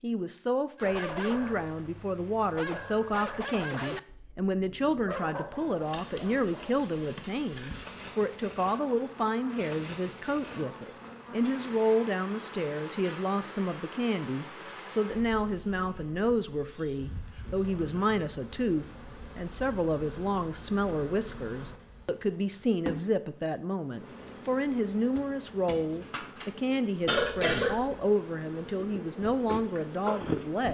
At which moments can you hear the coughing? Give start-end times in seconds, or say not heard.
27.1-28.1.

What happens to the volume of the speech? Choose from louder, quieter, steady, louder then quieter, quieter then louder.
steady.